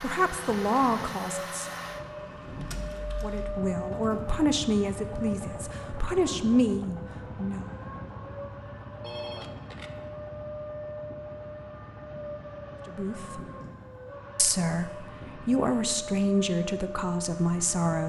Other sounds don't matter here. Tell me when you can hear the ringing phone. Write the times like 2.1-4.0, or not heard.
9.0-9.9.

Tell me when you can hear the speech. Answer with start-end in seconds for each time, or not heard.
0.0-1.7, 3.1-7.7, 12.8-13.4, 14.3-18.0.